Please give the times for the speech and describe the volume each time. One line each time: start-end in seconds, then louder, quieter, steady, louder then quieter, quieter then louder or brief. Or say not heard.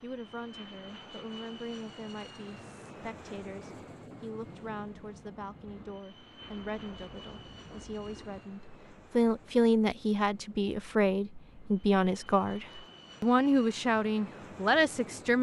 0.0-15.3 louder.